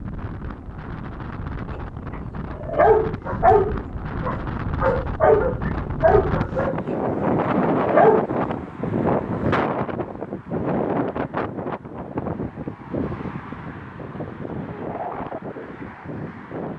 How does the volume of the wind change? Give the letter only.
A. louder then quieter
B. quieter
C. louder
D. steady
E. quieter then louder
A.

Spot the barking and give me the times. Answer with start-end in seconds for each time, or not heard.
2.5-8.2.